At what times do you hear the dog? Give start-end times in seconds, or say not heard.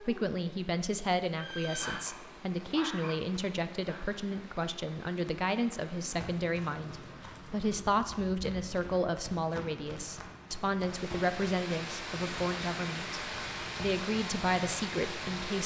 1.8-4.0.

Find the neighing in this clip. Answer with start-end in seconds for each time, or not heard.
1.4-1.9.